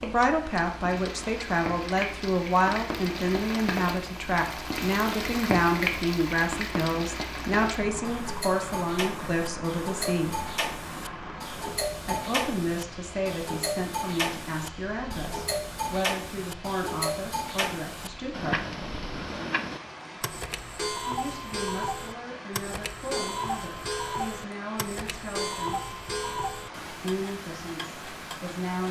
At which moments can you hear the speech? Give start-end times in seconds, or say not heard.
0.0-10.3, 12.1-18.8, 21.1-25.9, 27.0-28.8.